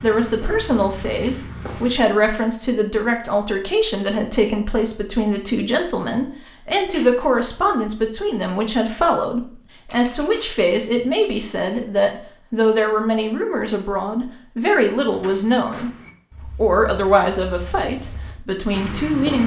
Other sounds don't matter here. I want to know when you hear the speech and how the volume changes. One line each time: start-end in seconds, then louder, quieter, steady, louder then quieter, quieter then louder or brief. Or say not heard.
0.0-19.4 steady.